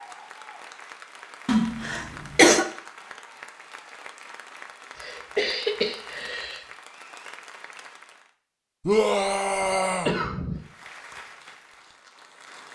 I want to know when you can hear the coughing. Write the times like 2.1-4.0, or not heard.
1.4-2.6, 5.0-6.7, 9.6-10.6.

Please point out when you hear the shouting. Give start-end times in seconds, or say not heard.
8.8-10.2.